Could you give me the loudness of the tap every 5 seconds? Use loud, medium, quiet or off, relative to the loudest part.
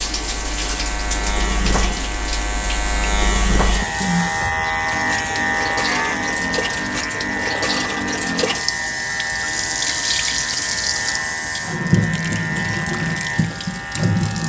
medium, loud, loud.